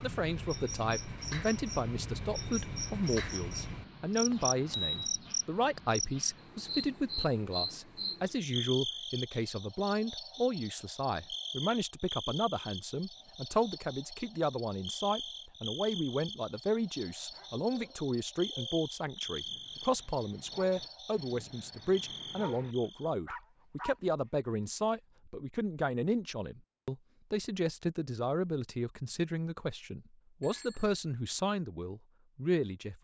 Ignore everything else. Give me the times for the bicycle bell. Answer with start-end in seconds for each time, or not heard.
4.3-5.2, 30.4-31.0.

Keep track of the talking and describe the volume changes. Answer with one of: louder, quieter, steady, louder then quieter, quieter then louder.
steady.